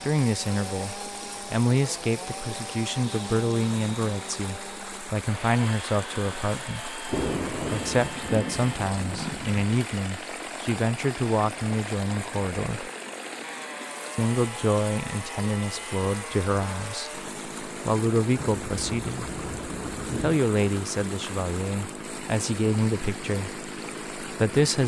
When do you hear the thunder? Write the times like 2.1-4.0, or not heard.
7.0-9.6, 18.4-20.4.